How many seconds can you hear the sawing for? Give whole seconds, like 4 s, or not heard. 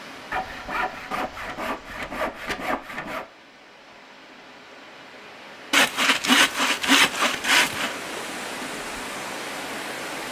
5 s.